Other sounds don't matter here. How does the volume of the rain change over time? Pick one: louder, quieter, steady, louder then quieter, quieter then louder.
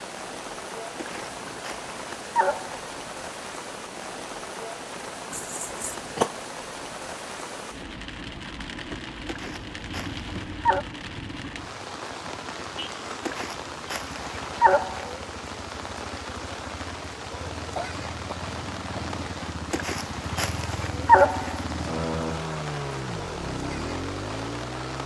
steady.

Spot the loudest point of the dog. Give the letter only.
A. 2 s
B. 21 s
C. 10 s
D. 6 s
B.